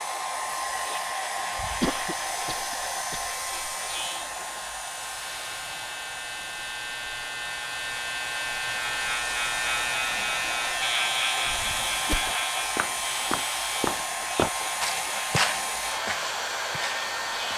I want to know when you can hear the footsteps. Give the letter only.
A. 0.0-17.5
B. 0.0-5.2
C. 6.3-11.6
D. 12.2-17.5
D.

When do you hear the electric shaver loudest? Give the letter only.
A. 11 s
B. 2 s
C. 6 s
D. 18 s
A.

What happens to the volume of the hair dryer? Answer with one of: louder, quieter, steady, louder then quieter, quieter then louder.
quieter then louder.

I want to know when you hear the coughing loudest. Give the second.
2 s.